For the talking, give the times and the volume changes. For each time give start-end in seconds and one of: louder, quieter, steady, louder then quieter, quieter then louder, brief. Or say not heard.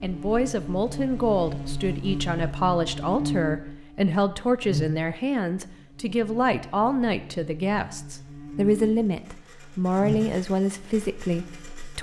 0.0-11.9 steady.